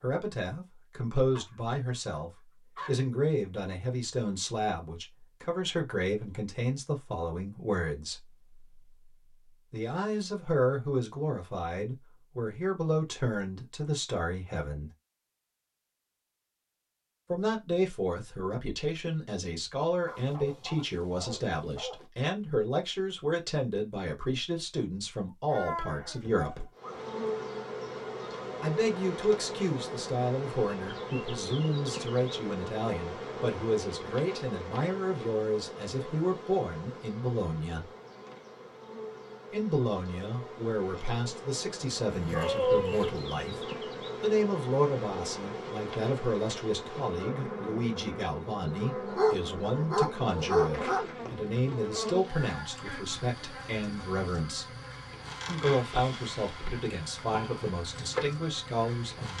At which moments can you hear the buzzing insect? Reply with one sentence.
You can hear the buzzing insect from 26.8 to 59.3 s.